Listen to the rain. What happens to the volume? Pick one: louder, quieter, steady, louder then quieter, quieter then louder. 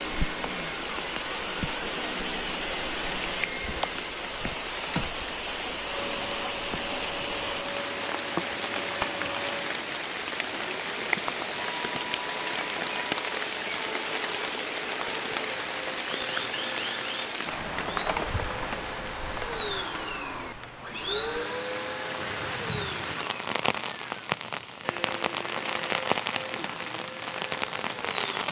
steady.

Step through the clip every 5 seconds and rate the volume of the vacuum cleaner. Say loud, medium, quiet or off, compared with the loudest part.
medium, medium, medium, loud, loud, medium.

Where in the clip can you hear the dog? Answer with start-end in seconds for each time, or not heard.
not heard.